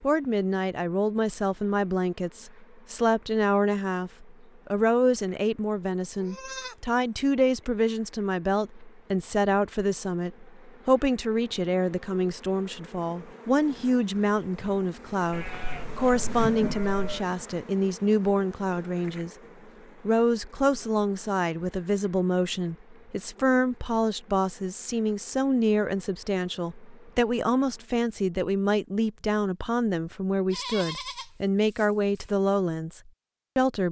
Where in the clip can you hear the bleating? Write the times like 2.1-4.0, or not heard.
6.2-6.8, 15.3-17.2, 30.5-32.2.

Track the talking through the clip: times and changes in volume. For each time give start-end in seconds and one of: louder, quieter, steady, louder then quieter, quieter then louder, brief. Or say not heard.
0.0-19.4 steady
20.0-33.8 steady.